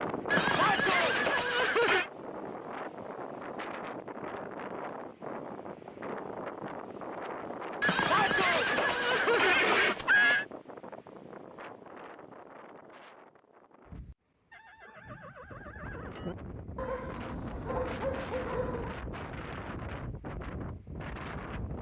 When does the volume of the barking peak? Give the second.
18 s.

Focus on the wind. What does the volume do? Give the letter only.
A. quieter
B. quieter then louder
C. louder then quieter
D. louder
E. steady
B.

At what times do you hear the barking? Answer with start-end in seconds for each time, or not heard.
16.8-19.0.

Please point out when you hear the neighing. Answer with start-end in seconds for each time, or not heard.
0.3-2.1, 7.8-10.4, 14.5-16.4.